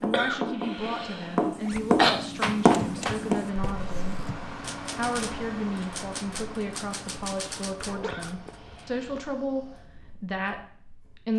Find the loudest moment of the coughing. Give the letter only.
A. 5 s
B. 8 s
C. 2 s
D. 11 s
C.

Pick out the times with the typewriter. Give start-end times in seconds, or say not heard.
2.6-8.8.